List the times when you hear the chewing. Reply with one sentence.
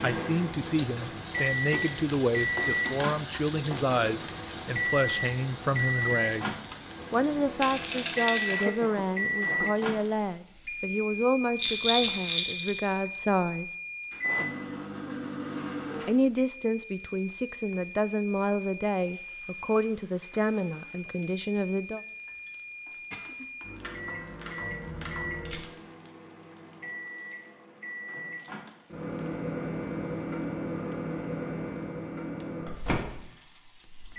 The chewing can't be heard in this clip.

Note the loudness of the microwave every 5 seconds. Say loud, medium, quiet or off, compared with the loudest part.
loud, loud, loud, medium, medium, medium, loud.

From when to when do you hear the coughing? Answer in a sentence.
The coughing can be heard from 8.5 to 9.7 s, from 14.2 to 15.2 s and from 22.9 to 23.5 s.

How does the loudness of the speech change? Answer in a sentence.
The loudness of the speech stays about the same.